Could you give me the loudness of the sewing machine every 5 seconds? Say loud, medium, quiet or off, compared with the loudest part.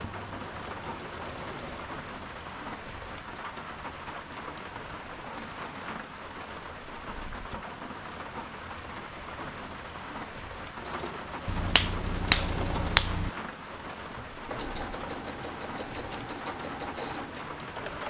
medium, off, loud, loud.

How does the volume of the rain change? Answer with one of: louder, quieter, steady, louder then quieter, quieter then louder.
steady.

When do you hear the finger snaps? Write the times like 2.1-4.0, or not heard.
11.4-13.3.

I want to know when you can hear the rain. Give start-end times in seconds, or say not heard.
0.0-18.0.